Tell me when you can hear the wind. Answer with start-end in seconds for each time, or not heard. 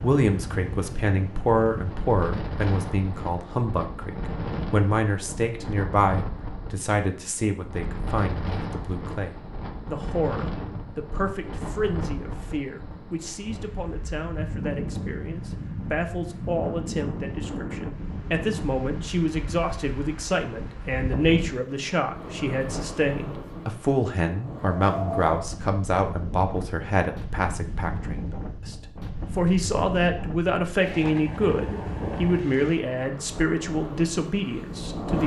0.0-35.2.